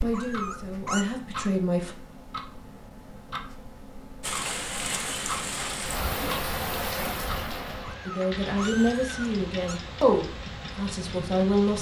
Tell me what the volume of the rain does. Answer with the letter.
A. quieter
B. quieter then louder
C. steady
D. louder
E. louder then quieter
A.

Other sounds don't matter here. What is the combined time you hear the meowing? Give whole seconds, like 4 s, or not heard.
3 s.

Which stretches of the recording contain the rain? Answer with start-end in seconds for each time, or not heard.
4.2-11.7.